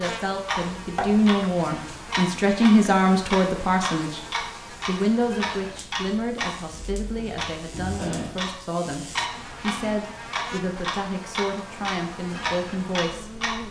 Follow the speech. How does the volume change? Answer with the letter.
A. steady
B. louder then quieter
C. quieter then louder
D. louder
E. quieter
E.